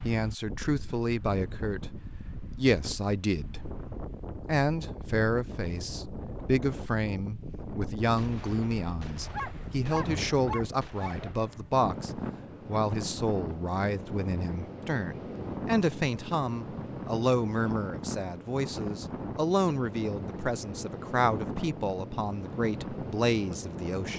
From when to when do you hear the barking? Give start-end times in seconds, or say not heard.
9.3-11.3.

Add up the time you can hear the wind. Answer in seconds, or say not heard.
24 s.